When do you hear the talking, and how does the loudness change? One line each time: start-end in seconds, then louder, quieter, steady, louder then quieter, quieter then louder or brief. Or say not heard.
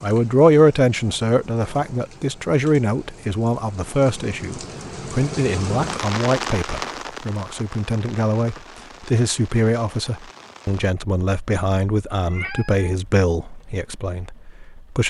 0.0-15.0 quieter.